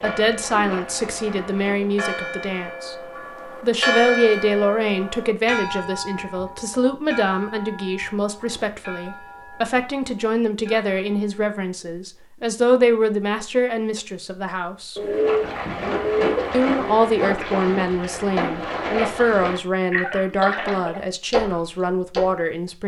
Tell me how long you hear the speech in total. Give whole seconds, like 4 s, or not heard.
21 s.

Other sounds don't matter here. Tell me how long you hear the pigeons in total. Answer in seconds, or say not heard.
4 s.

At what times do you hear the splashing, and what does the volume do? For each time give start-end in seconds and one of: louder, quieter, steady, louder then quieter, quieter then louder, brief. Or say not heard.
0.0-2.0 brief
15.0-22.4 steady.